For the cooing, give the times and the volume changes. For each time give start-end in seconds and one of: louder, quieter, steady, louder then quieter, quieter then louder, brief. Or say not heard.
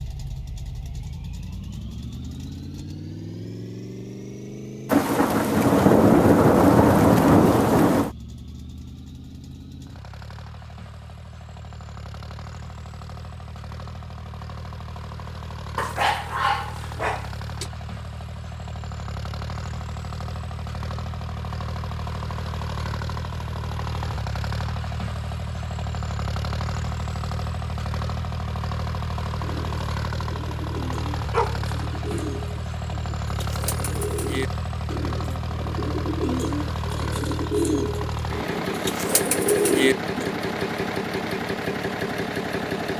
29.4-40.4 louder.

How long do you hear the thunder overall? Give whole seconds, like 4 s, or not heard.
3 s.